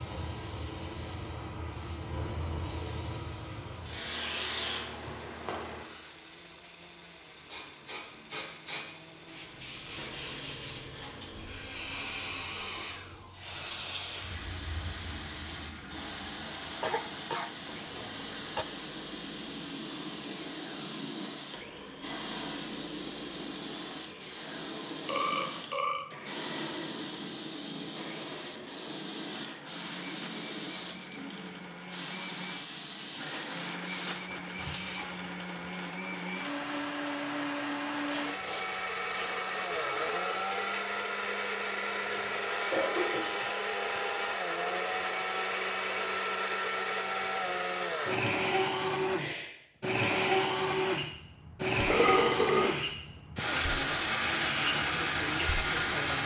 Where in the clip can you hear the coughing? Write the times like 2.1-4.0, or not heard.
16.8-18.6, 42.0-43.5.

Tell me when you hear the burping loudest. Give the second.
52 s.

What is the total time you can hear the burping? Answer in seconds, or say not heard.
2 s.